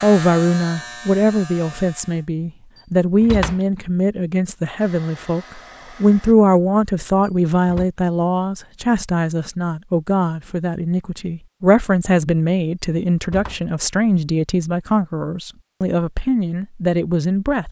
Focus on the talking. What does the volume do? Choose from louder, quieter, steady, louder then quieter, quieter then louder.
steady.